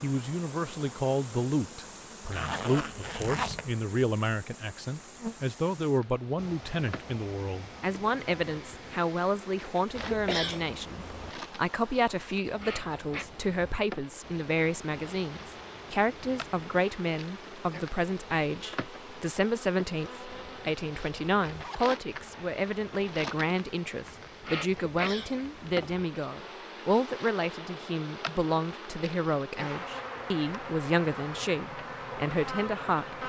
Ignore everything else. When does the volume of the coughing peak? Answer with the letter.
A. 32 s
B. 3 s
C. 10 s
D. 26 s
C.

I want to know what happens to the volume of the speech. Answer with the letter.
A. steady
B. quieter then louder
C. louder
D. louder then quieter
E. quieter
A.